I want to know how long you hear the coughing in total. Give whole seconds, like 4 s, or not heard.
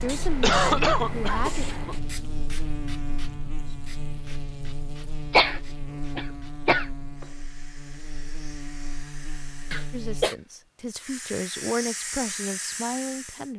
4 s.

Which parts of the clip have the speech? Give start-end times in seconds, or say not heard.
0.0-1.6, 9.9-13.5.